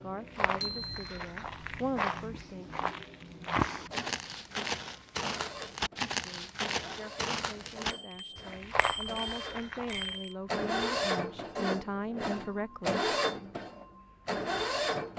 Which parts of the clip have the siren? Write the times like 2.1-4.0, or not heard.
not heard.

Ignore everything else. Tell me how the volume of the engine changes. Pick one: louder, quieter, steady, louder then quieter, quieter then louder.
louder.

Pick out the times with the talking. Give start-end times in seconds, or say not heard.
0.0-2.7, 6.2-13.0.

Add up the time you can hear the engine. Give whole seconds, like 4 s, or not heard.
15 s.